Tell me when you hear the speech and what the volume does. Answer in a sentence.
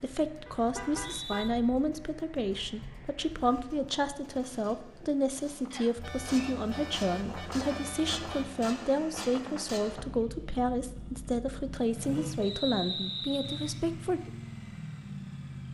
The speech can be heard from 0.0 to 14.3 s, at a steady volume.